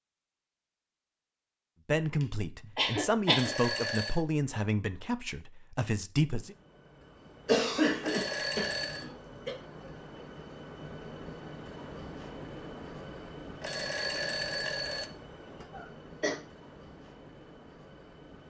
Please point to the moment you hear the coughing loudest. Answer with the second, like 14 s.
8 s.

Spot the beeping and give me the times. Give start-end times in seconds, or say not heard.
3.2-4.2, 8.0-9.1, 13.6-15.1.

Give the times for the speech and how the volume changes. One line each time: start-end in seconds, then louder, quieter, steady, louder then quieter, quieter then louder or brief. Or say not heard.
1.9-6.5 louder then quieter.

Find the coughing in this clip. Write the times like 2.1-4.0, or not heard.
2.8-3.5, 7.5-9.6, 15.7-16.4.